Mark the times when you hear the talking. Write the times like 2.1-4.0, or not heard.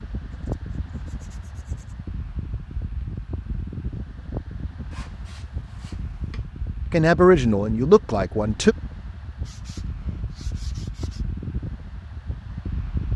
6.9-8.8.